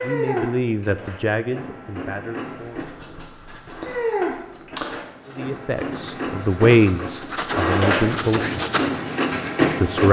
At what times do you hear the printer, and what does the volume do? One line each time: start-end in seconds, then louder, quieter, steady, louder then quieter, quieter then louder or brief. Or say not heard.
0.0-10.0 louder.